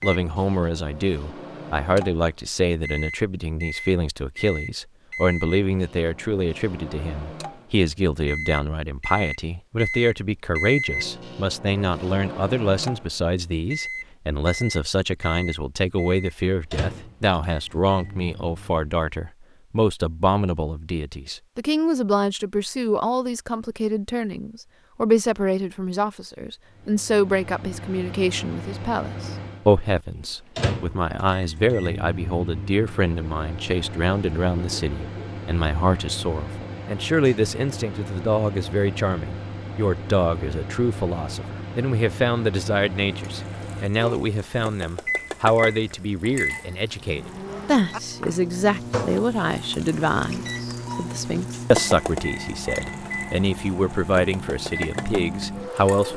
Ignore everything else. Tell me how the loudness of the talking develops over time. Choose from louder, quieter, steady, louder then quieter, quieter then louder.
steady.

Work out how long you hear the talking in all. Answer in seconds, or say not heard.
56 s.